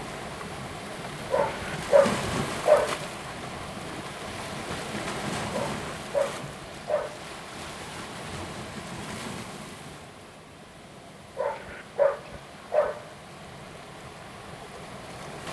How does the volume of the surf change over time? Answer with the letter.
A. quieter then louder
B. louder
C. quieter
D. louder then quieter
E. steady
C.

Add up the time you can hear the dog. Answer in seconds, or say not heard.
5 s.